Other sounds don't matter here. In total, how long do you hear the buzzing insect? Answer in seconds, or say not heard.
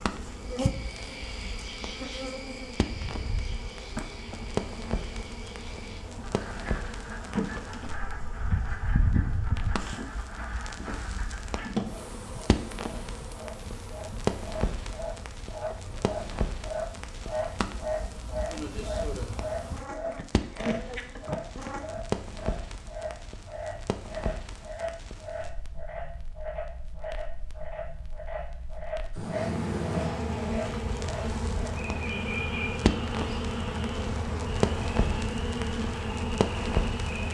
30 s.